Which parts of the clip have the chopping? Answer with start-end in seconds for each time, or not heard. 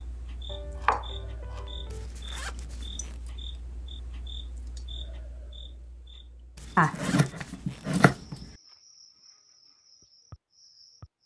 0.5-2.0, 6.8-8.3.